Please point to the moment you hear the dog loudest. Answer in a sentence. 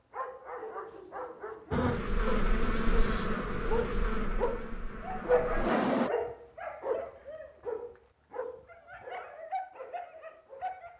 The volume of the dog peaks at 5 seconds.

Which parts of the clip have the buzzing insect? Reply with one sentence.
The buzzing insect can be heard from 1.7 to 6.1 s.